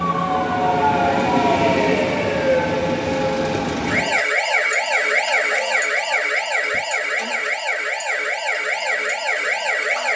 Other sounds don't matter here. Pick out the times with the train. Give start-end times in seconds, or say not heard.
0.0-4.2.